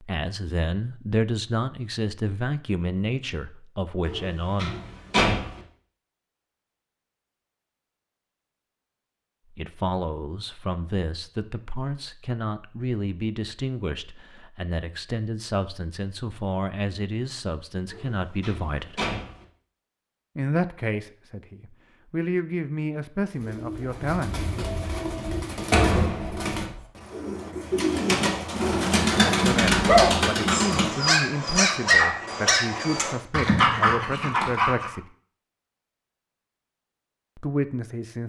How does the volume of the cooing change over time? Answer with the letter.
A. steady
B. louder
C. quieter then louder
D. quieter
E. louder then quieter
B.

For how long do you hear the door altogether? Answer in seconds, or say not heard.
4 s.